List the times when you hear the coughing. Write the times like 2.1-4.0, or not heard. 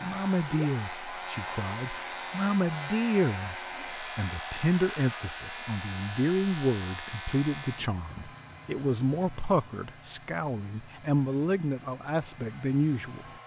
not heard.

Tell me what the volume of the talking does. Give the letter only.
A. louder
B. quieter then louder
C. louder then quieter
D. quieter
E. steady
E.